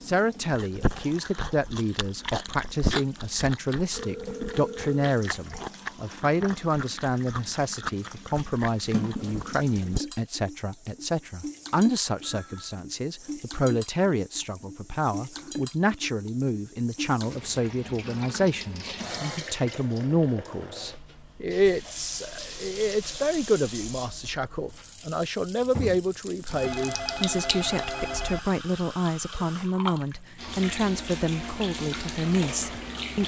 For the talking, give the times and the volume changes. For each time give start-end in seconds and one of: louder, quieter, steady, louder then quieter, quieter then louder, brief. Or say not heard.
0.0-33.2 steady.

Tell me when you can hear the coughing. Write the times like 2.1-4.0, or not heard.
not heard.